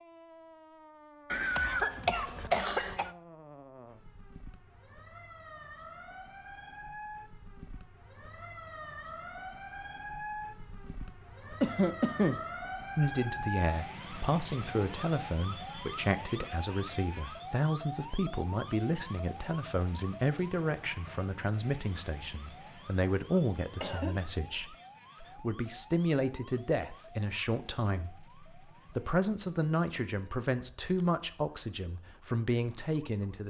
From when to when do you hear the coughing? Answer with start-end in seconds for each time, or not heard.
1.3-3.1, 11.6-12.4, 23.4-24.2.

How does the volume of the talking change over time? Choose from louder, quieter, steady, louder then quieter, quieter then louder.
steady.